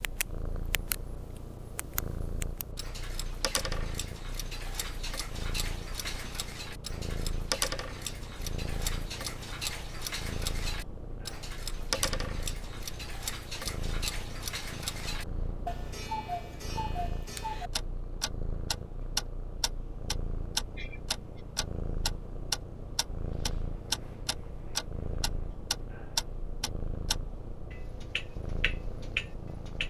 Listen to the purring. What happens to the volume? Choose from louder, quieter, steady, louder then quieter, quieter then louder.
steady.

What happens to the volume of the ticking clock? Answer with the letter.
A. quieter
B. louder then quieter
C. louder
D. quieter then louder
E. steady
C.